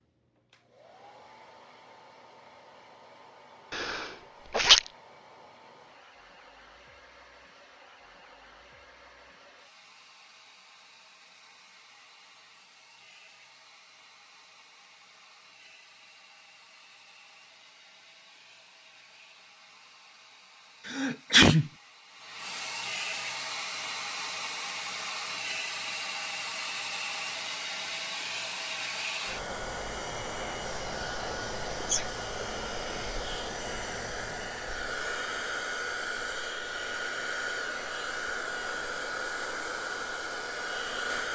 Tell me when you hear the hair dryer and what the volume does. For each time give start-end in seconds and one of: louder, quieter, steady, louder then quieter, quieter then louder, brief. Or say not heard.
0.0-41.3 louder.